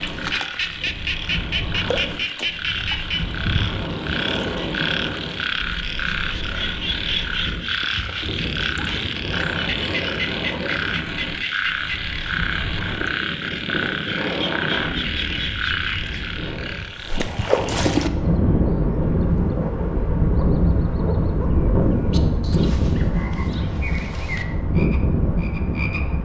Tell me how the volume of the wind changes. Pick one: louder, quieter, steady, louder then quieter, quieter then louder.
louder.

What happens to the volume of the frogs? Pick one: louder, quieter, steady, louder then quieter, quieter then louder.
quieter.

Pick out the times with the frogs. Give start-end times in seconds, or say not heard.
0.0-26.1.